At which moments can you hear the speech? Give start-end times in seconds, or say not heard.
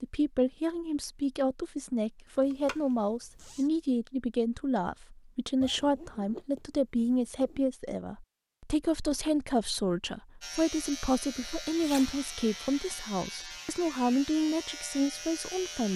0.0-15.9.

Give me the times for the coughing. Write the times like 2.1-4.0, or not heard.
not heard.